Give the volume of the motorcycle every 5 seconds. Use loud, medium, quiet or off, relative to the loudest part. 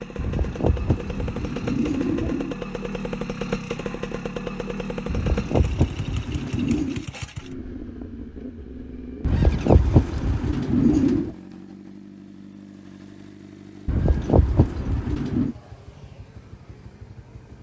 loud, loud, medium, quiet.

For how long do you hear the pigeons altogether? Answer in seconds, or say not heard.
8 s.